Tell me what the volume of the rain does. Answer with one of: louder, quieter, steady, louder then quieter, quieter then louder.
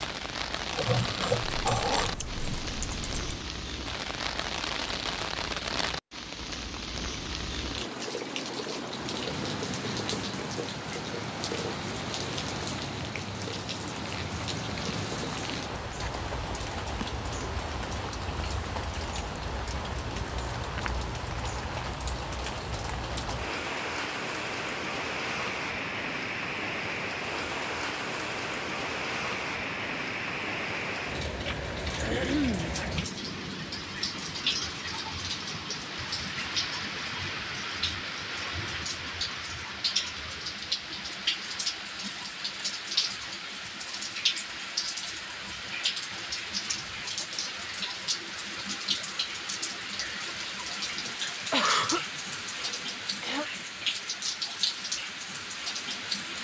steady.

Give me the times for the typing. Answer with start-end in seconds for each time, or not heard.
1.4-3.4.